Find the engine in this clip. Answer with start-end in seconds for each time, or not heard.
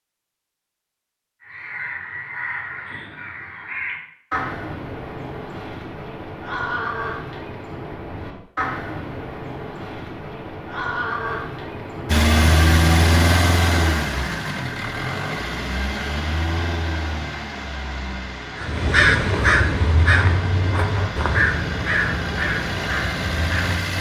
12.1-23.9.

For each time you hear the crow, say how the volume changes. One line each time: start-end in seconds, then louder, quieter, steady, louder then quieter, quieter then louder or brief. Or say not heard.
1.4-12.3 steady
18.6-23.9 quieter.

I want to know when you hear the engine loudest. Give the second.
13 s.